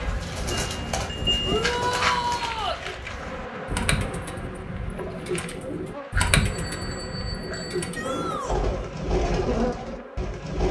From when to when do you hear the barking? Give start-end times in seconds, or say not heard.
not heard.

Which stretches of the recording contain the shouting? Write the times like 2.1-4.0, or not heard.
1.4-2.8, 7.9-8.9.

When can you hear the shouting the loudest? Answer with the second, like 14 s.
2 s.